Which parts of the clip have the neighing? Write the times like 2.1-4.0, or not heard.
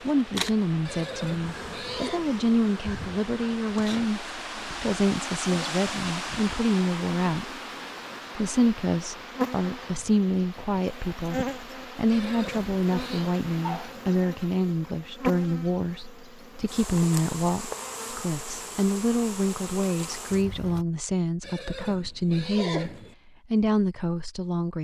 0.8-2.2, 12.1-13.3, 21.4-23.1.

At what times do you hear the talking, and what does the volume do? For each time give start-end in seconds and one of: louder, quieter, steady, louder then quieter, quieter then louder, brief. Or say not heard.
0.0-7.5 steady
8.3-22.9 steady
23.5-24.7 brief.